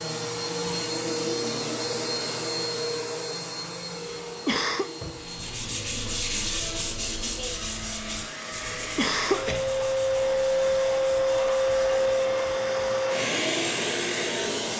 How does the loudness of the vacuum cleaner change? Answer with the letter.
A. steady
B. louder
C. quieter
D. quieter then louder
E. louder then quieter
D.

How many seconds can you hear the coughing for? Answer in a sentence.
The coughing can be heard for 2 seconds in total.